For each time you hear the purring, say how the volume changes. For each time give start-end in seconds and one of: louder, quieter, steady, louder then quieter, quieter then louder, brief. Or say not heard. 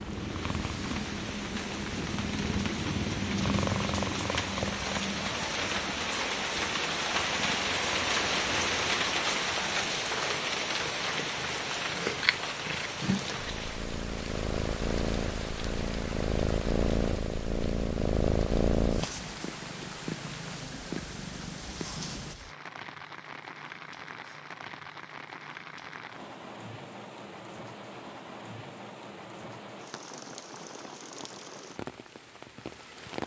0.0-22.4 quieter then louder.